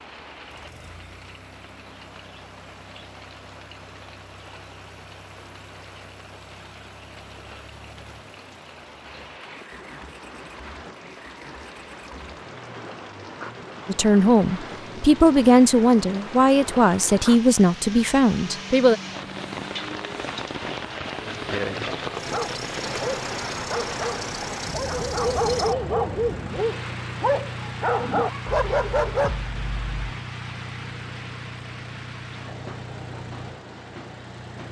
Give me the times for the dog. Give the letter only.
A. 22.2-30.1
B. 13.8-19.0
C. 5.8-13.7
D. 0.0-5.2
A.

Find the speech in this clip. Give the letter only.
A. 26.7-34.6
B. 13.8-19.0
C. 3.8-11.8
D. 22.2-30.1
B.